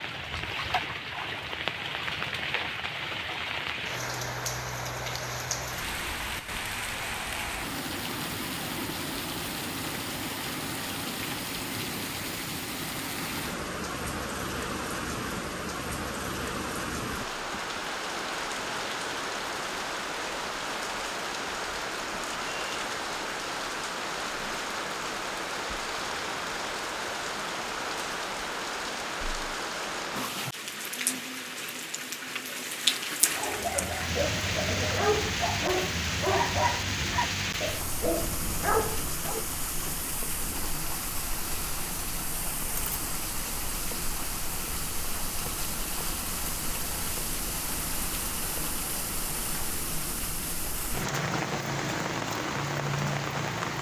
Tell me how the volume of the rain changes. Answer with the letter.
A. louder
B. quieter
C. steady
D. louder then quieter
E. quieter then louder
C.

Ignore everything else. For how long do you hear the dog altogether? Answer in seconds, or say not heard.
6 s.